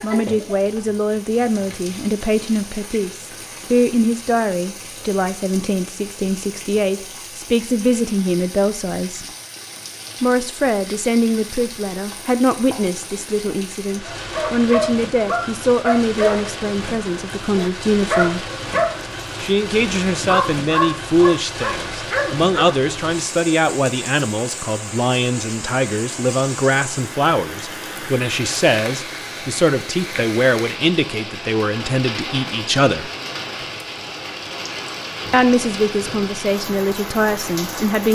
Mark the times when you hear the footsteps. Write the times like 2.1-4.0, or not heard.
not heard.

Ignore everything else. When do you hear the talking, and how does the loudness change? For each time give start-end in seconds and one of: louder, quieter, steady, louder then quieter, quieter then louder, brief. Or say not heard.
0.0-9.2 steady
10.2-18.4 steady
19.4-33.1 steady
35.3-38.0 brief.